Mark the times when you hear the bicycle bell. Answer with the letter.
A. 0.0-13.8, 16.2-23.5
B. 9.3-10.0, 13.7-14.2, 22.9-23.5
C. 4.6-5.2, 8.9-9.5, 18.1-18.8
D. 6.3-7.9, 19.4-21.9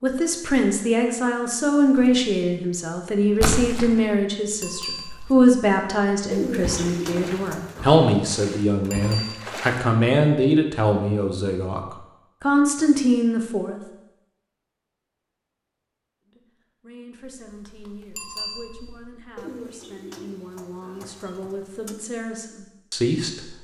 C.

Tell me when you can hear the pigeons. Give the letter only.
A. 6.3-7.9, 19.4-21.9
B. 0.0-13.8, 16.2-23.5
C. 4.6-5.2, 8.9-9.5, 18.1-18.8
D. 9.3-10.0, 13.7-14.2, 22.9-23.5
A.